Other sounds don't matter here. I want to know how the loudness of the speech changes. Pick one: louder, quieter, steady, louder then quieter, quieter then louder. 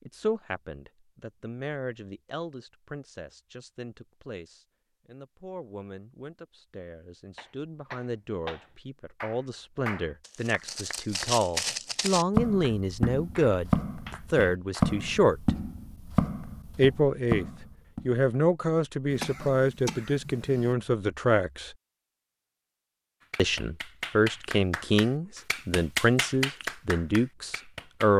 louder.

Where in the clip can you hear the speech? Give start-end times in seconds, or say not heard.
0.1-15.6, 16.8-21.8, 23.4-28.1.